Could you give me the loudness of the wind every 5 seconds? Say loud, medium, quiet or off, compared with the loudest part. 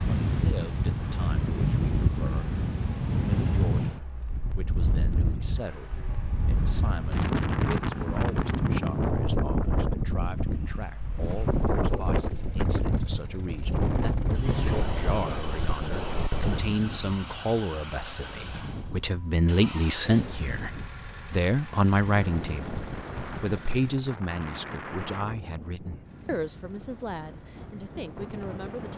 loud, loud, loud, medium, medium, quiet.